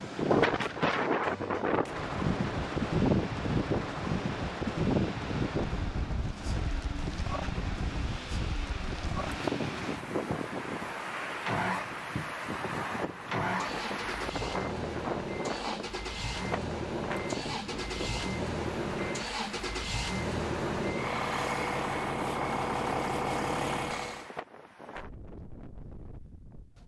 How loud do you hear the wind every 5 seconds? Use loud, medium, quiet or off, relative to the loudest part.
loud, medium, medium, medium, quiet, quiet.